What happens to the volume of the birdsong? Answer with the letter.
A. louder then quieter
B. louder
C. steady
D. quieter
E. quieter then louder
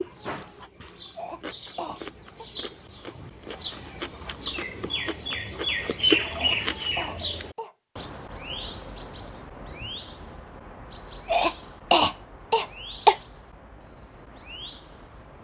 A.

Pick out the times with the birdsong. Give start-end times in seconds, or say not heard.
0.0-15.3.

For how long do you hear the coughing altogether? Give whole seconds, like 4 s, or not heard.
5 s.